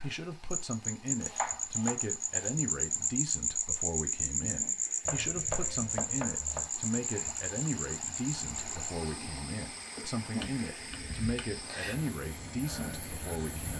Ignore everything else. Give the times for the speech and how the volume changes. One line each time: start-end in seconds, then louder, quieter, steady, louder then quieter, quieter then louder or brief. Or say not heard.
0.0-13.7 steady.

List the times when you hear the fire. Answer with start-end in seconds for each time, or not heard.
not heard.